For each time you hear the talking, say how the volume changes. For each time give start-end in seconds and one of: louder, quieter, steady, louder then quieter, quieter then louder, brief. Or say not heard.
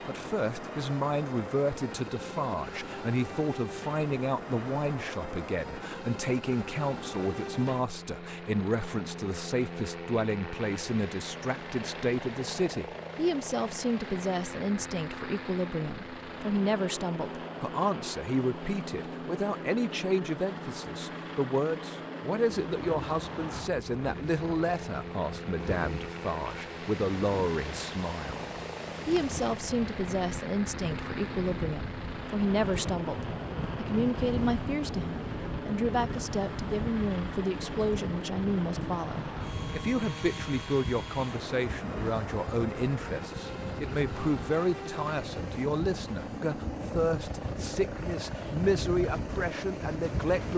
0.1-50.5 steady.